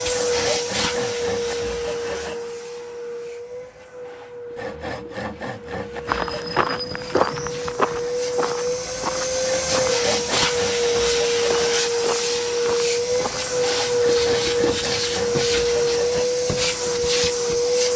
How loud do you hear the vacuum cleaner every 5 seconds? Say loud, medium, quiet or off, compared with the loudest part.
medium, medium, loud, loud.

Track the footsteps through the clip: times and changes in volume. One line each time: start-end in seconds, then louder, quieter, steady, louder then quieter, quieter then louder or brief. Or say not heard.
6.0-13.6 quieter.